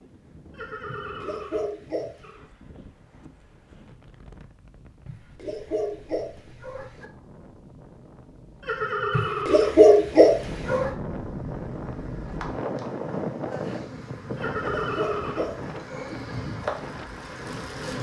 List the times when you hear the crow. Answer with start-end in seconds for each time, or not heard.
not heard.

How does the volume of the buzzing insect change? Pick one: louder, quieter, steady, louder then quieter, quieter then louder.
louder.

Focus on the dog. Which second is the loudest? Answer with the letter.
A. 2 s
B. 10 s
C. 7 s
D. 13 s
B.